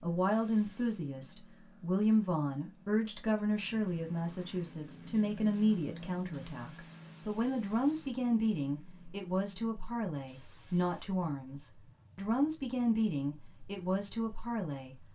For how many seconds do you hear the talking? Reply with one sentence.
You can hear the talking for 15 seconds altogether.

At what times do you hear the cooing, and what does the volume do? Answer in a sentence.
The cooing can't be heard in this clip.